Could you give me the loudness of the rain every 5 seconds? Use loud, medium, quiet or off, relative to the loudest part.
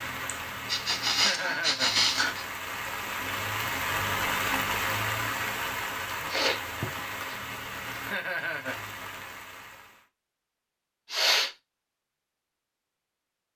loud, loud, off.